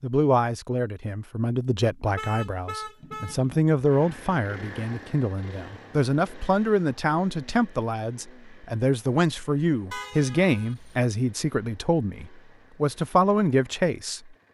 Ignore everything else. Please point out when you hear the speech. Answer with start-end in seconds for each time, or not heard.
0.0-14.3.